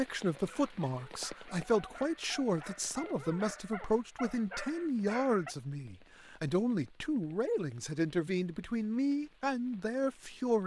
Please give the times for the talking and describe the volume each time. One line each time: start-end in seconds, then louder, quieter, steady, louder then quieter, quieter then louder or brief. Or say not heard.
0.0-10.6 steady.